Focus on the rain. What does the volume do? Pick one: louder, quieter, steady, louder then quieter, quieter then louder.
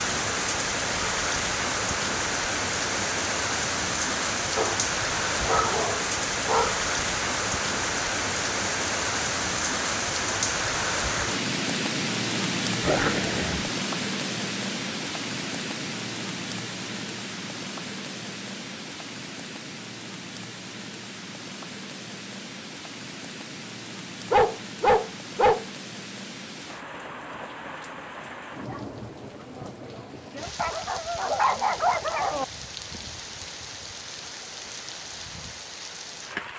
quieter.